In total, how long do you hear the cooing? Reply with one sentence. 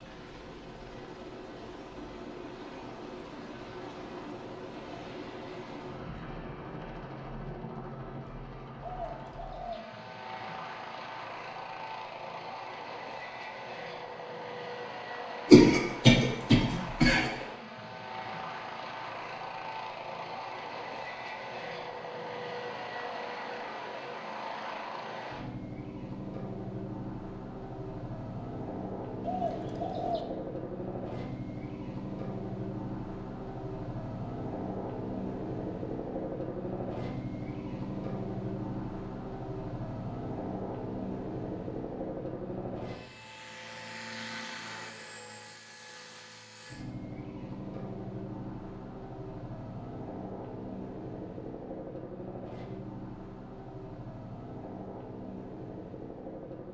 The cooing can be heard for 2 seconds in total.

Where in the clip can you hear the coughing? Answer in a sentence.
You can hear the coughing from 15.5 to 17.4 s.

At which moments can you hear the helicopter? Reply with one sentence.
The helicopter can be heard from 0.0 to 56.6 s.